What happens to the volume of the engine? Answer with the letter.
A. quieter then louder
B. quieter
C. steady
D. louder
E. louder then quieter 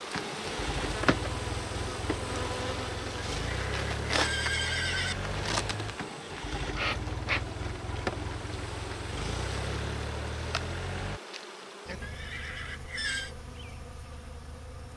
C.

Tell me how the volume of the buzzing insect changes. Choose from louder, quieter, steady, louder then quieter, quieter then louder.
quieter.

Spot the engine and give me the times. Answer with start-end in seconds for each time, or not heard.
0.0-11.2.